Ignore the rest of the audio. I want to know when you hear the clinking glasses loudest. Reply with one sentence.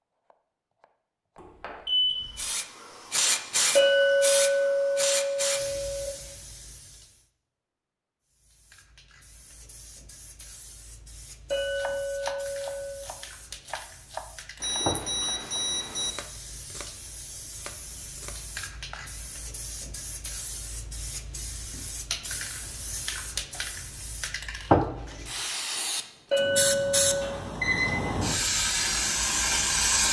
The loudest moment of the clinking glasses is at 4 seconds.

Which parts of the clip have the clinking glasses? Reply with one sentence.
The clinking glasses can be heard from 3.8 to 6.1 s, from 11.5 to 13.0 s and from 26.3 to 27.4 s.